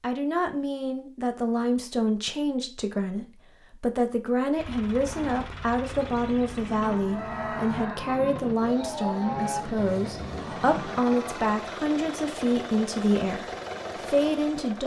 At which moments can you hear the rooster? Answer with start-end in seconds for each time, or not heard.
6.9-8.5.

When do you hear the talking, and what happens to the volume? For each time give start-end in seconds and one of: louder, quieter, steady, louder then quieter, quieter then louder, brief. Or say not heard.
0.0-14.8 steady.